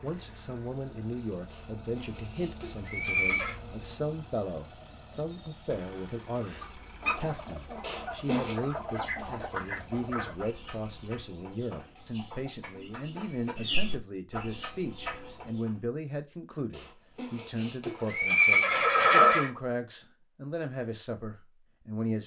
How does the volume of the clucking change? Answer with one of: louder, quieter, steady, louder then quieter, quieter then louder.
quieter then louder.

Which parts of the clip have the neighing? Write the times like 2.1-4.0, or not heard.
1.5-3.5, 7.8-8.6, 17.1-19.5.